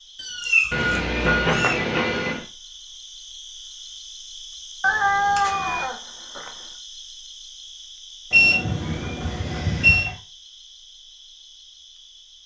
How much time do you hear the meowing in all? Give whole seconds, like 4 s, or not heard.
5 s.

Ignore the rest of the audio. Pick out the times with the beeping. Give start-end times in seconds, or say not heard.
0.7-2.5, 4.8-5.8, 8.3-10.1.